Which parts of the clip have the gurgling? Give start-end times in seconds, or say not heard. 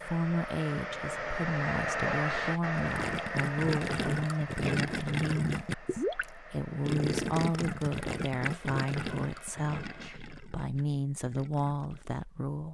2.8-12.2.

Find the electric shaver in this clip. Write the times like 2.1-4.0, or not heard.
not heard.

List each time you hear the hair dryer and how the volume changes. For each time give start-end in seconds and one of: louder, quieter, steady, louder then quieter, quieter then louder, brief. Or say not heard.
0.0-10.2 quieter.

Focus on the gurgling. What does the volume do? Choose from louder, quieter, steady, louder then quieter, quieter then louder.
quieter.